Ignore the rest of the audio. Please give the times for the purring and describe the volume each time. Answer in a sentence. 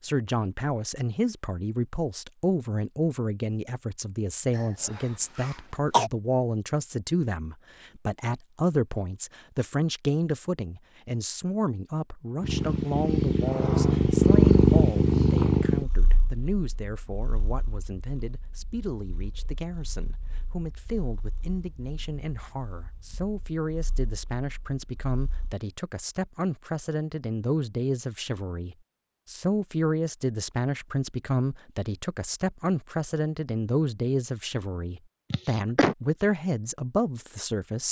You can hear the purring from 12.4 to 25.6 s, getting quieter.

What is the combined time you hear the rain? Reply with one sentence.
You can't hear the rain here.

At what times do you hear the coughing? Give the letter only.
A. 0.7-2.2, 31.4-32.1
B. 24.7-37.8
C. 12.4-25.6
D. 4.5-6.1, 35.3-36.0
D.